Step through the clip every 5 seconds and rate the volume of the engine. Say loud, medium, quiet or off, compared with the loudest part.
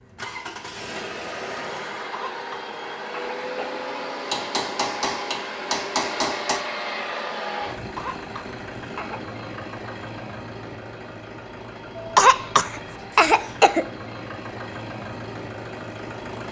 loud, loud, medium, loud.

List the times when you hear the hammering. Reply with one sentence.
The hammering can be heard from 4.3 to 6.6 s.